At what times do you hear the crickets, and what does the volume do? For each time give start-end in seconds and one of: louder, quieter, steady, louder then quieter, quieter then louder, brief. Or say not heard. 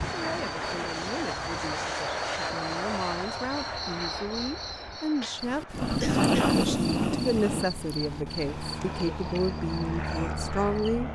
0.0-11.1 louder then quieter.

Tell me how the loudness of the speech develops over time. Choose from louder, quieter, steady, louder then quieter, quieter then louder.
louder.